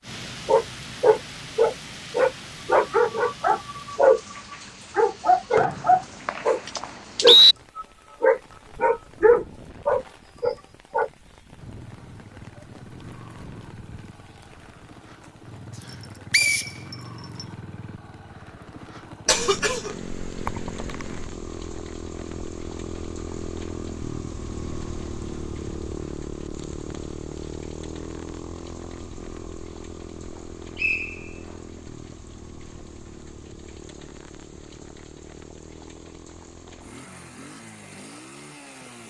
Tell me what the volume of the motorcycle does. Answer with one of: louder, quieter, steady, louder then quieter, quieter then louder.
louder then quieter.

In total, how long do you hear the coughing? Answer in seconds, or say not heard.
2 s.